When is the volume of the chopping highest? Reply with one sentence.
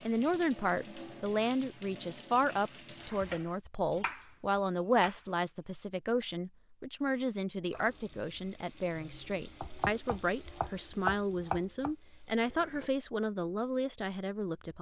The loudest moment of the chopping is at 11 seconds.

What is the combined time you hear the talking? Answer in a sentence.
The talking can be heard for 15 seconds in total.